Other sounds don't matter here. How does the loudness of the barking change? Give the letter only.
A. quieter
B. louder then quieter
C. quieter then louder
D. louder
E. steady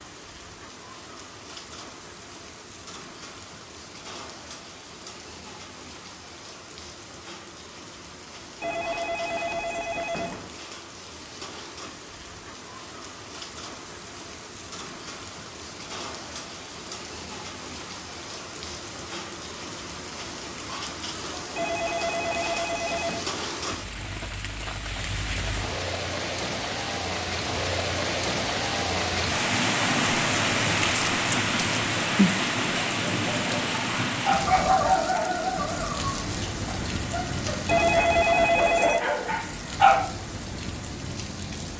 C.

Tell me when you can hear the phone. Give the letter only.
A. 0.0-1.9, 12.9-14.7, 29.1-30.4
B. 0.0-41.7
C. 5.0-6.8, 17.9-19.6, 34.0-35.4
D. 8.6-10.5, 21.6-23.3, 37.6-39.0
D.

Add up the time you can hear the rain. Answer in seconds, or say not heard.
42 s.